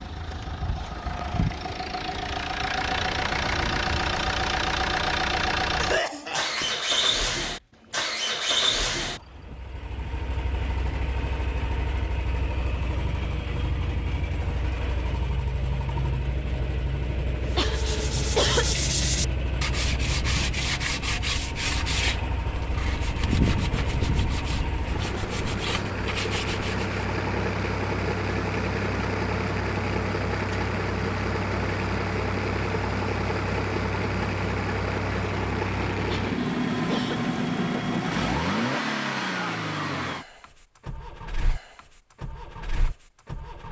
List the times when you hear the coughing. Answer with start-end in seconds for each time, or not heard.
5.8-6.8, 17.5-18.8, 36.0-37.3.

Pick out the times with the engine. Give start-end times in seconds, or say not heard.
0.0-43.6.